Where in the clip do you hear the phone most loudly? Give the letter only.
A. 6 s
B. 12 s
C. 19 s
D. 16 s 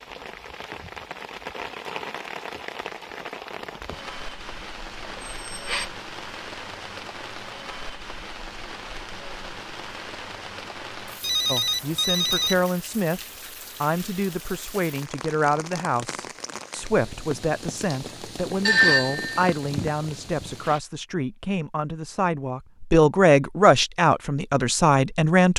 C.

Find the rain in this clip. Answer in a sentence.
You can hear the rain from 0.0 to 20.8 s.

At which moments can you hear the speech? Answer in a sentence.
You can hear the speech from 11.4 to 13.2 s and from 13.8 to 25.5 s.